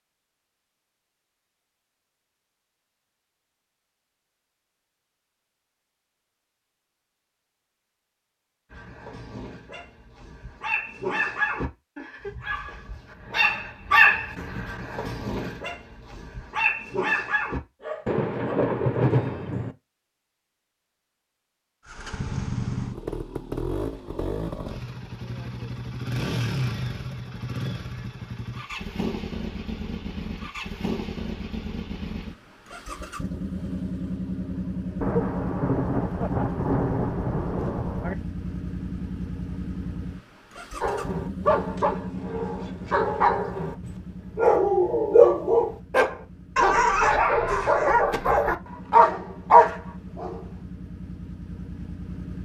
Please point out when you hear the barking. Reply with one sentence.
You can hear the barking from 8.7 to 18.6 s and from 40.8 to 50.4 s.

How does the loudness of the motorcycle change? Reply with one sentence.
The loudness of the motorcycle goes down.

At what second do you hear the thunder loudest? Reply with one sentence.
The loudest moment of the thunder is at 19 seconds.